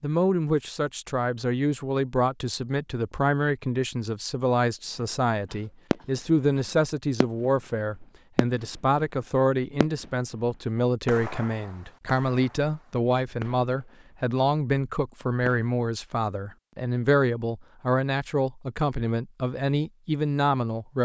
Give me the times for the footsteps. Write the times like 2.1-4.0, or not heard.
not heard.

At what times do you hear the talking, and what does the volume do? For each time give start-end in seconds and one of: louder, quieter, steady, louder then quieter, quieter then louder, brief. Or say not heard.
0.0-21.0 steady.